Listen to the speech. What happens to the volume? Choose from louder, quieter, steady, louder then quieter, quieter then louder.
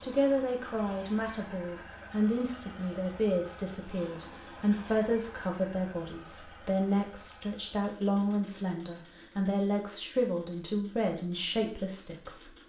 steady.